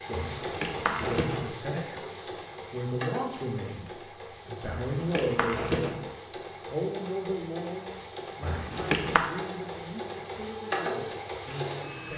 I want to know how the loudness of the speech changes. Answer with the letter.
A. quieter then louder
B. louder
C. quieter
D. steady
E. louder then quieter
E.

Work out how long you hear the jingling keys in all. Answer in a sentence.
You can hear the jingling keys for 3 seconds altogether.